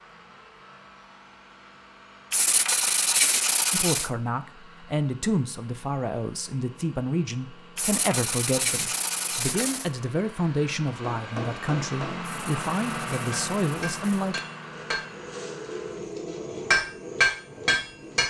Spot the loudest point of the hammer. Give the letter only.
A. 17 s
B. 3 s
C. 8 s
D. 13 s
A.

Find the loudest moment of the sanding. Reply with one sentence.
The volume of the sanding peaks at 3 seconds.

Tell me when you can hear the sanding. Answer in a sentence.
You can hear the sanding from 2.3 to 4.1 s, from 7.8 to 9.9 s and from 12.2 to 14.3 s.